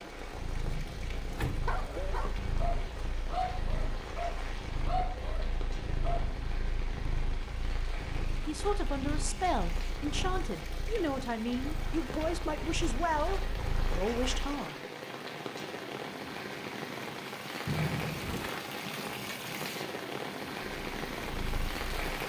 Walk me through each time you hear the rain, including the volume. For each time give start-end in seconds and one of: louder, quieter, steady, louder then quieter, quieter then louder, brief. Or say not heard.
0.0-22.2 louder.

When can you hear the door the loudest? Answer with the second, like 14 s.
18 s.